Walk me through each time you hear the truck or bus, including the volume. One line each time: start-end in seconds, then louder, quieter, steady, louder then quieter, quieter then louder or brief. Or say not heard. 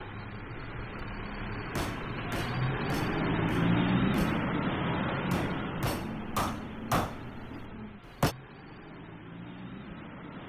0.0-10.4 louder then quieter.